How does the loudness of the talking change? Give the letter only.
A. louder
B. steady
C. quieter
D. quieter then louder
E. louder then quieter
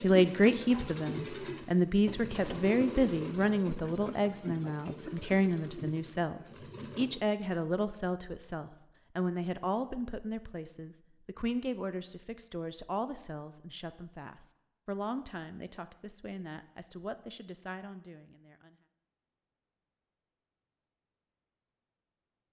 C.